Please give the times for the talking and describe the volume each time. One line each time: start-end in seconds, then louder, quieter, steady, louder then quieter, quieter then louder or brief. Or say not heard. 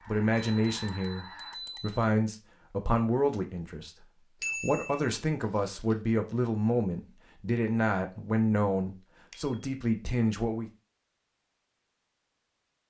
0.1-10.7 steady.